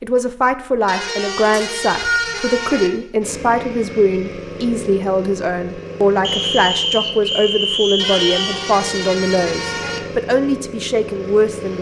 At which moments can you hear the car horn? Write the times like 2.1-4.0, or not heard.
0.8-2.9, 8.0-10.0.